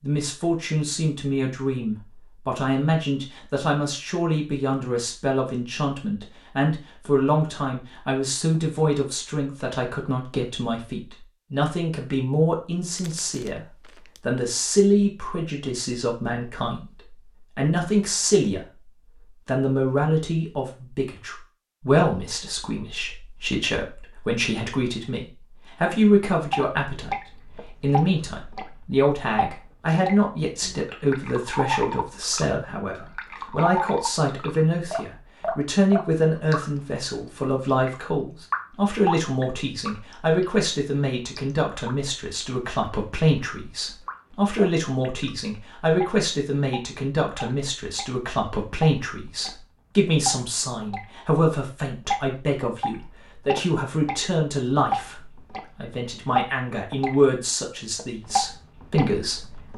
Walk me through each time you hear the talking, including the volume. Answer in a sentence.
You can hear the talking from 0.0 to 18.6 s, at a steady volume; and from 19.4 to 59.7 s, at a steady volume.